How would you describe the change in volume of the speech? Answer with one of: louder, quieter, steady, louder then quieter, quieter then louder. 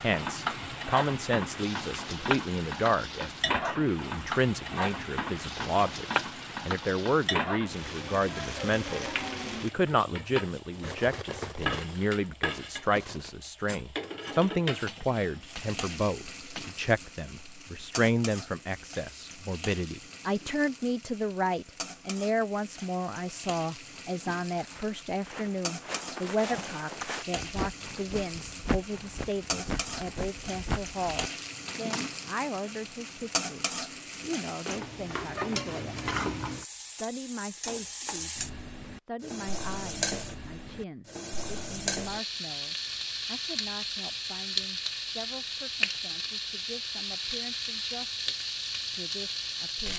quieter.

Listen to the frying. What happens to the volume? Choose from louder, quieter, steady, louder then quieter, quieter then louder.
quieter then louder.